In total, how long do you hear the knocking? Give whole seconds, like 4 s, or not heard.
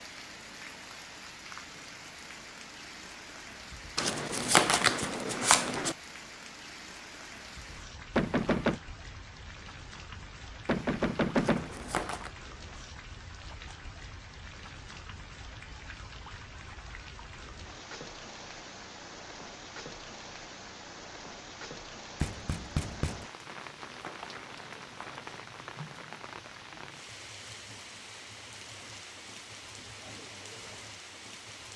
3 s.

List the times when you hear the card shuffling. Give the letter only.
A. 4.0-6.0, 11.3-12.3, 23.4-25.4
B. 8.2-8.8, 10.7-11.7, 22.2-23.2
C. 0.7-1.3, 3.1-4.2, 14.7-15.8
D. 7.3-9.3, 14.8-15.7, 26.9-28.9
A.